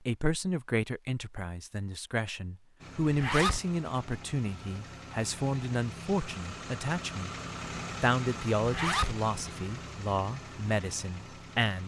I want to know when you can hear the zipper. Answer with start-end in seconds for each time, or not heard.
3.0-3.6, 8.6-9.2.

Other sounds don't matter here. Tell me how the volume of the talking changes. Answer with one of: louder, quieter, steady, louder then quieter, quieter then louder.
steady.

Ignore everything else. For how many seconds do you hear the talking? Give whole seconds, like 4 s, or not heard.
11 s.